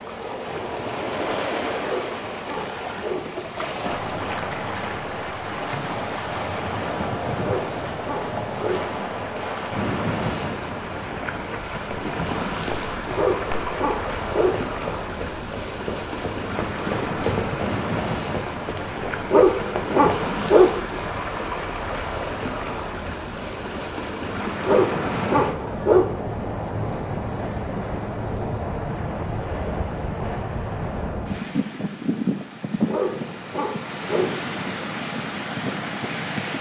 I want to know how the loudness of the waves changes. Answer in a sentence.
The loudness of the waves stays about the same.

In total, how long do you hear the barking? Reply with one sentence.
The barking can be heard for 9 seconds in total.